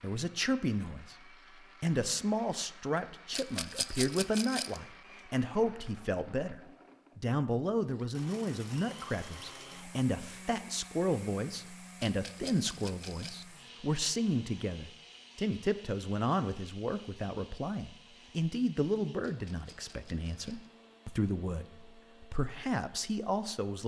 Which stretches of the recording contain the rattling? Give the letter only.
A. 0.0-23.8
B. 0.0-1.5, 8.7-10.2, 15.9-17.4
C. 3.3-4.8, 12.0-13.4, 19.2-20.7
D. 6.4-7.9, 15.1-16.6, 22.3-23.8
C.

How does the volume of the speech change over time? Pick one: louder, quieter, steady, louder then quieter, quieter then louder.
steady.